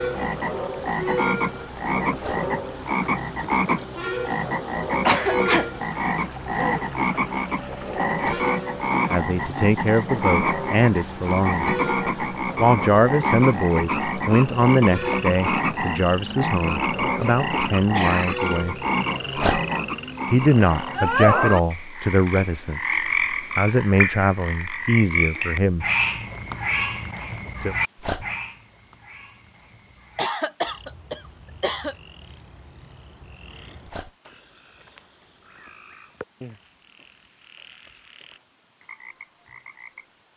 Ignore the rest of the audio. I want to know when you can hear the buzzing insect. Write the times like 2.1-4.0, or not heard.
not heard.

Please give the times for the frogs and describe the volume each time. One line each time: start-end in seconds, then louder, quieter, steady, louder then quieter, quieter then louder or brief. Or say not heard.
0.0-40.3 quieter.